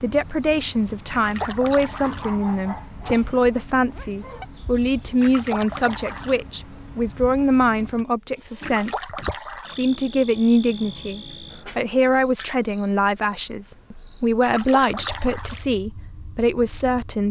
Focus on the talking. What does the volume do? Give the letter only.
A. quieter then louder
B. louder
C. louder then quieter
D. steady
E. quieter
D.